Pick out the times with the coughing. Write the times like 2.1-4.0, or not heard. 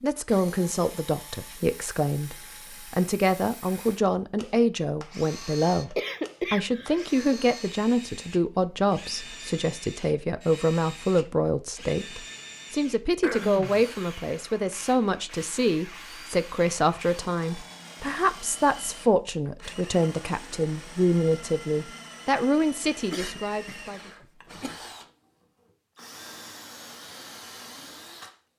6.0-7.4, 13.2-13.8, 23.1-24.8.